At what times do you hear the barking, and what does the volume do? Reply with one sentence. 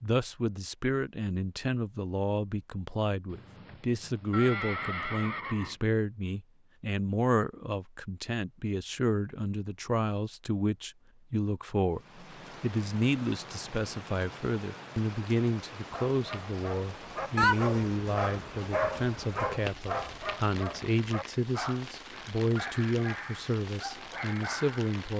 You can hear the barking from 15.8 to 24.9 s, getting quieter.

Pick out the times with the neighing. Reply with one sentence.
The neighing can be heard from 3.2 to 5.8 s.